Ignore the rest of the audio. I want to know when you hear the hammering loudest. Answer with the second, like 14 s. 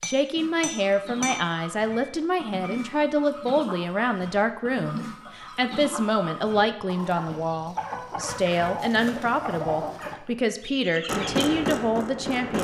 12 s.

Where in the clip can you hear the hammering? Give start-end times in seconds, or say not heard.
0.0-2.9, 11.1-12.5.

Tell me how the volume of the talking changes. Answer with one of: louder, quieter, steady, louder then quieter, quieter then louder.
steady.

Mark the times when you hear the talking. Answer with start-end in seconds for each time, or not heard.
0.1-12.5.